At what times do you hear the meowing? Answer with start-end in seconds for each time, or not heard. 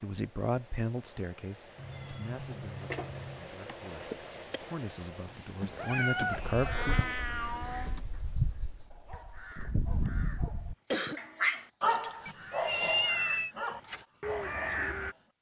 1.8-3.5, 5.6-8.1, 12.2-13.6.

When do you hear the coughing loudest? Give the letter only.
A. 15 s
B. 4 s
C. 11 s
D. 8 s
C.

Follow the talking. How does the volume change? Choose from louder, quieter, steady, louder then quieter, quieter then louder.
quieter then louder.